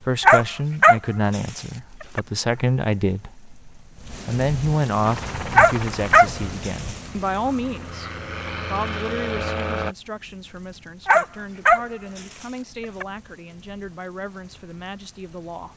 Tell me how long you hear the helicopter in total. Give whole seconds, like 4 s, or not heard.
5 s.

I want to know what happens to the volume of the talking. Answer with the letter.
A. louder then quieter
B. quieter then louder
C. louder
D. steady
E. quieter
E.